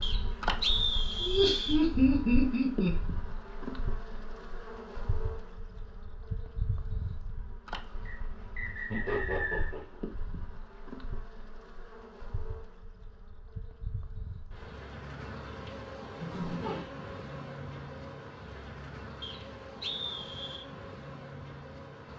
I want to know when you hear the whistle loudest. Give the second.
1 s.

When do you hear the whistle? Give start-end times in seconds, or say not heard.
0.0-1.8, 8.1-9.8, 19.2-20.6.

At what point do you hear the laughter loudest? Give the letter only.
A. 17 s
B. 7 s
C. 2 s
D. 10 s
C.